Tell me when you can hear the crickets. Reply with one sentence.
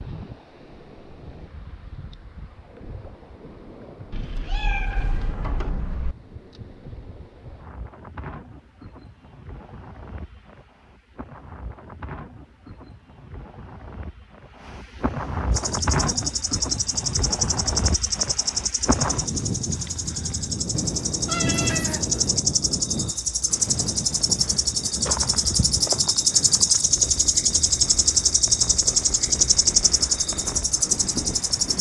You can hear the crickets from 15.5 to 31.7 s.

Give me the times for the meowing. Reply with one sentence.
The meowing can be heard from 4.1 to 6.2 s and from 20.7 to 22.4 s.